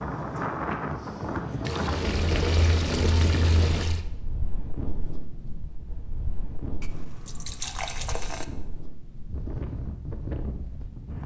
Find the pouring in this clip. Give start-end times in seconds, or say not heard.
1.6-4.0, 6.8-8.4.